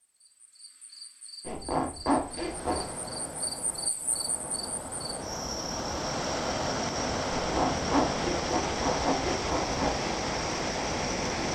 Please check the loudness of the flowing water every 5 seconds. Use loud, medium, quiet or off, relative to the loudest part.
medium, loud, loud.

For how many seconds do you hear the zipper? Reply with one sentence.
You can hear the zipper for 4 seconds altogether.